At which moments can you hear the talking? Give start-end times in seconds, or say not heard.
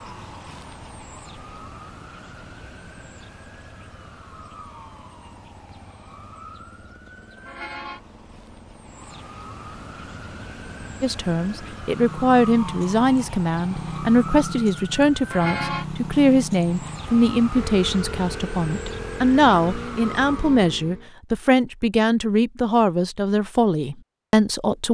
11.0-24.9.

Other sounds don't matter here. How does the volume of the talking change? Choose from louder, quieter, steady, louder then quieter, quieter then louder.
steady.